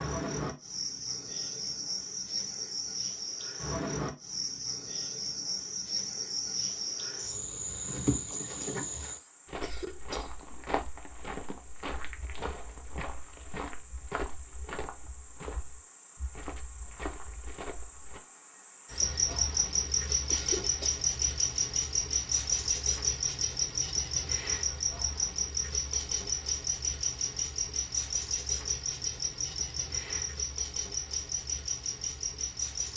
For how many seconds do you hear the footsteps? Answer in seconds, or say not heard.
9 s.